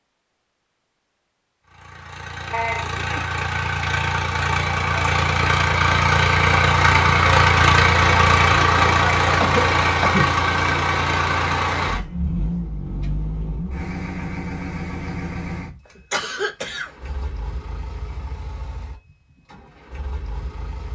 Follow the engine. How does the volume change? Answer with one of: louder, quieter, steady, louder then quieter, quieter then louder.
louder then quieter.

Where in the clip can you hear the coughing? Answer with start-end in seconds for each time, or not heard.
2.5-3.0, 9.4-10.3, 16.1-16.9.